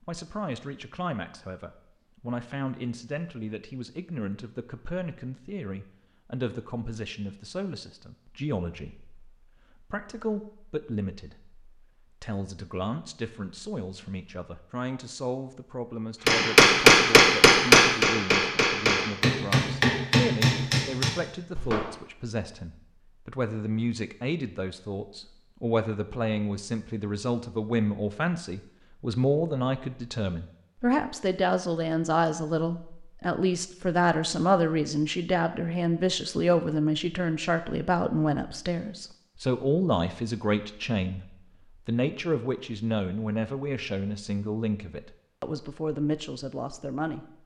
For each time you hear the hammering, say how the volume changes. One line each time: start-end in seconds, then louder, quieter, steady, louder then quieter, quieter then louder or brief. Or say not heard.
16.2-21.9 quieter.